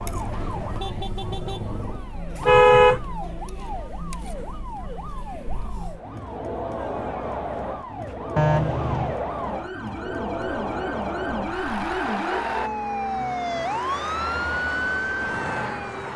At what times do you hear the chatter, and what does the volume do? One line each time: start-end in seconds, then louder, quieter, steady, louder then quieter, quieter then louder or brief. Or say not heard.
0.0-12.7 louder.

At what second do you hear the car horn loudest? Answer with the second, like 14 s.
3 s.